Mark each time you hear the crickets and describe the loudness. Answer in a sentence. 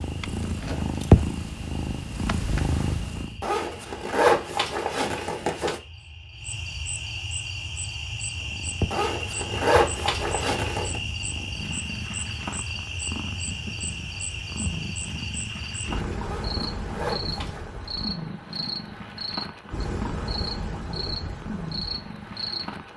You can hear the crickets from 0.0 to 22.9 s, getting louder.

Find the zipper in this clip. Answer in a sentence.
You can hear the zipper from 3.4 to 5.8 s, from 8.9 to 11.0 s and from 16.2 to 17.7 s.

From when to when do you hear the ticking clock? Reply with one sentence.
You can't hear the ticking clock here.